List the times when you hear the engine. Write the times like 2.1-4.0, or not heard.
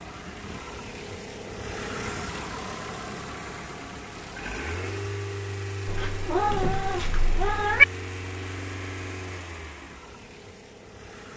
0.0-11.3.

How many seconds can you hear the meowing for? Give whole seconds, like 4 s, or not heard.
2 s.